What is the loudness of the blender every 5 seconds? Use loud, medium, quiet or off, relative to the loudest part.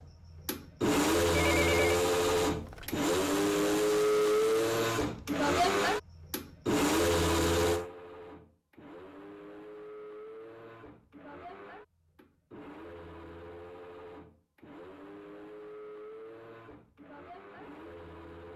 loud, loud, quiet, quiet.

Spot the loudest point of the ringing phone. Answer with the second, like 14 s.
2 s.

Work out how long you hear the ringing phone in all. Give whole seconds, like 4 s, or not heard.
2 s.